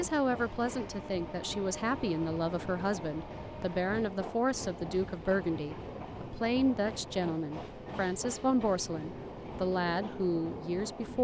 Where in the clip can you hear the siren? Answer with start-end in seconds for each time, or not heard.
not heard.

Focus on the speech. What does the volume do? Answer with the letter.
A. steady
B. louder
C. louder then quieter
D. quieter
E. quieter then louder
A.